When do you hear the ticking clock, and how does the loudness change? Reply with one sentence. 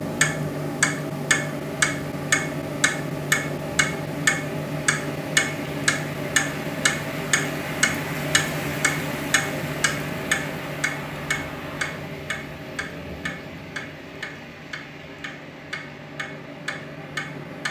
You can hear the ticking clock from 0.0 to 17.6 s, getting quieter.